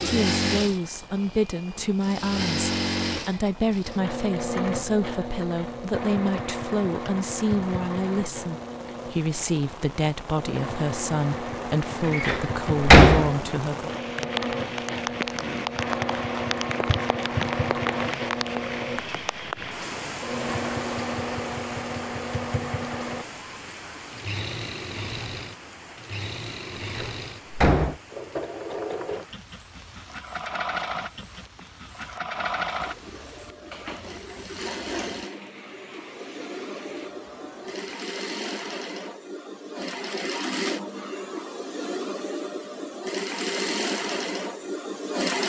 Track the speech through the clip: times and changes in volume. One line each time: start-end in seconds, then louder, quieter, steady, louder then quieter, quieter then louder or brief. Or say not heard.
0.0-13.9 steady.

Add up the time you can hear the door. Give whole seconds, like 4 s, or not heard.
2 s.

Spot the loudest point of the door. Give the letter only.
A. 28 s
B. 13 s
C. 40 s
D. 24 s
B.